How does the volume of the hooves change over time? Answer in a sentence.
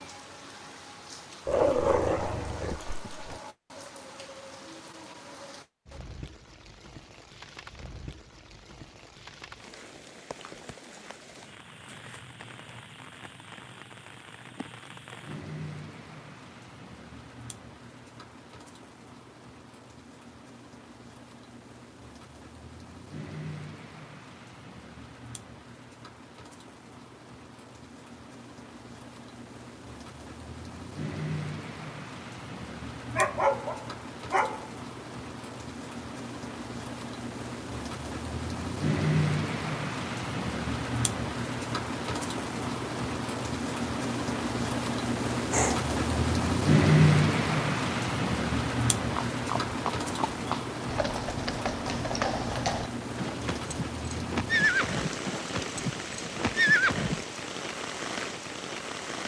The volume of the hooves goes up.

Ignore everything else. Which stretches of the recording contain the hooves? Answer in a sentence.
The hooves can be heard from 49.1 to 57.2 s.